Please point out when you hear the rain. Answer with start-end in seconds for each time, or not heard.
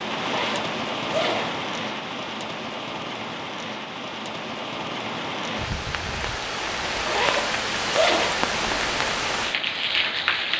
0.0-10.5.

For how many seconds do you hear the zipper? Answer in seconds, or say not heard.
3 s.